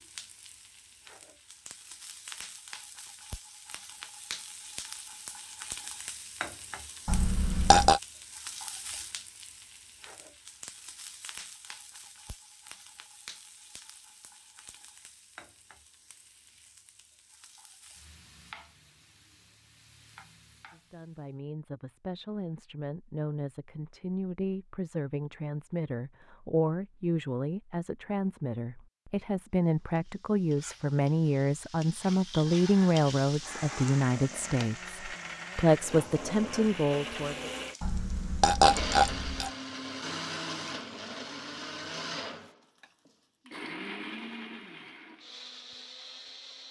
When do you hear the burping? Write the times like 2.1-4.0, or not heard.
7.0-8.0, 37.8-39.5.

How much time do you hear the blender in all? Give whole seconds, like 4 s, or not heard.
14 s.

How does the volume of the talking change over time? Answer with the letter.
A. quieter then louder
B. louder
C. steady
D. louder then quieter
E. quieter
B.